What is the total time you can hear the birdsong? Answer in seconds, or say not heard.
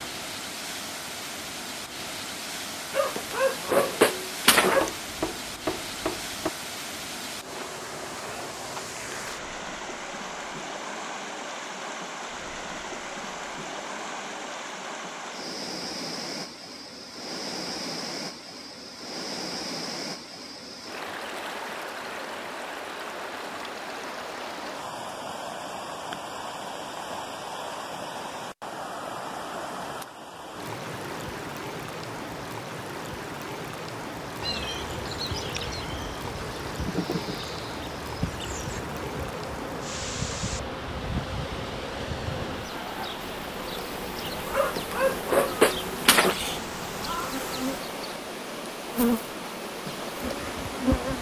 not heard.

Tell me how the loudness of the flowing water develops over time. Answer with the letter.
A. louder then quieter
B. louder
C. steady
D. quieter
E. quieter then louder
C.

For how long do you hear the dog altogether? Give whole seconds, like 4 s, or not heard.
4 s.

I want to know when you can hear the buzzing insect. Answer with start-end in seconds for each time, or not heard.
34.4-51.1.